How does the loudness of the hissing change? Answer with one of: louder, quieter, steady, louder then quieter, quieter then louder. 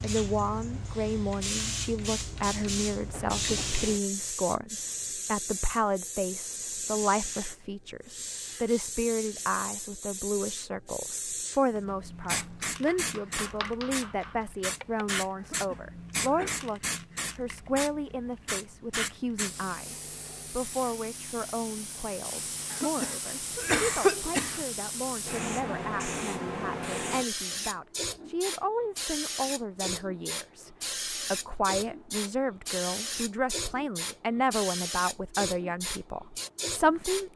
steady.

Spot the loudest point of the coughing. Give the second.
24 s.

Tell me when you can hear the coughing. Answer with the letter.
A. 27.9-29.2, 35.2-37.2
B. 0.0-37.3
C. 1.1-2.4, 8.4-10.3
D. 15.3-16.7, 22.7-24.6
D.